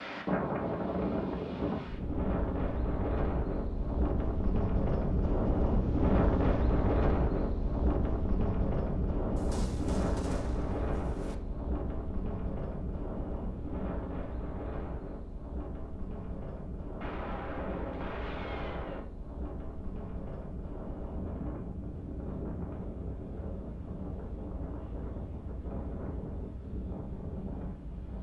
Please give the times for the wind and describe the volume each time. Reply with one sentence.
You can hear the wind from 0.0 to 28.1 s, getting quieter.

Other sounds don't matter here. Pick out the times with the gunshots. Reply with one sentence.
The gunshots can be heard from 9.3 to 11.3 s and from 17.0 to 19.0 s.